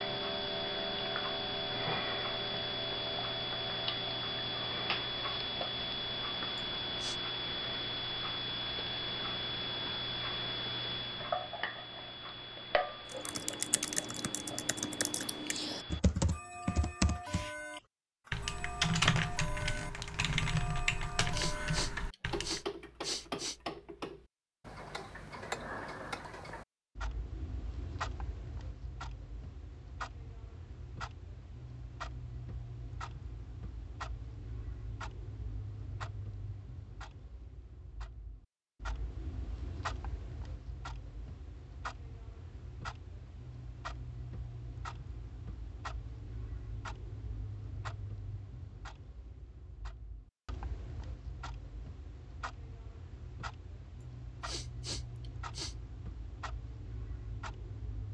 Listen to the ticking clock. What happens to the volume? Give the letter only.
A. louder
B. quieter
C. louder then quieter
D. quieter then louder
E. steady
B.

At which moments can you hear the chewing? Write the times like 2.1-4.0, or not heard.
not heard.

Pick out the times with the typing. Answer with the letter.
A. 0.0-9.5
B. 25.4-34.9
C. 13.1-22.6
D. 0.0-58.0
C.